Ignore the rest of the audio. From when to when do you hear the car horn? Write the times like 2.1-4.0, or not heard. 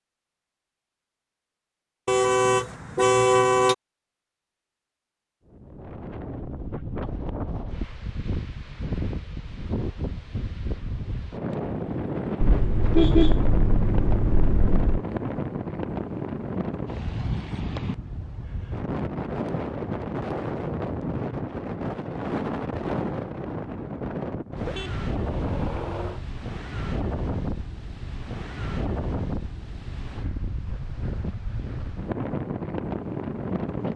2.0-3.8, 12.4-15.0, 24.5-26.2.